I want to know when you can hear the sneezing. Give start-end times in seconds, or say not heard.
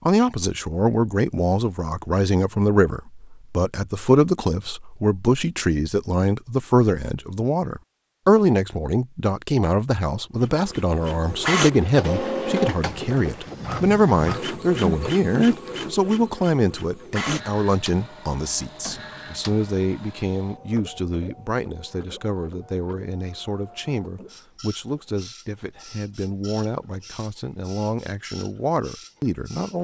14.8-15.6.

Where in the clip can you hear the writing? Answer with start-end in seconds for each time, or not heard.
not heard.